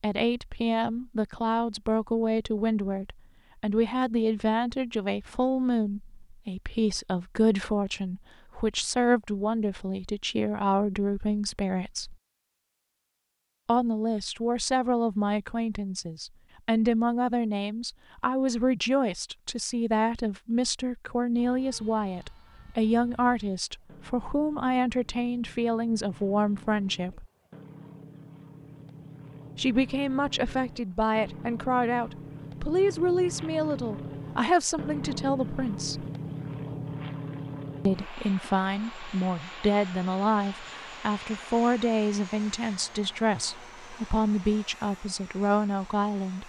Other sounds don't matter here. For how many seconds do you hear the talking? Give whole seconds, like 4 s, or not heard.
41 s.